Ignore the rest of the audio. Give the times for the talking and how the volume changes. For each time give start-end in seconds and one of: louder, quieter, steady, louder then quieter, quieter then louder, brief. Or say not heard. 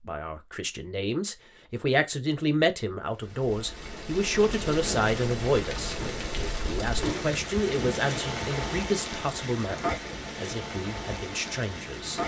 0.0-12.2 quieter.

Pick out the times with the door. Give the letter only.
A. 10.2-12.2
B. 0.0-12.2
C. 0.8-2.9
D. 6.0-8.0
D.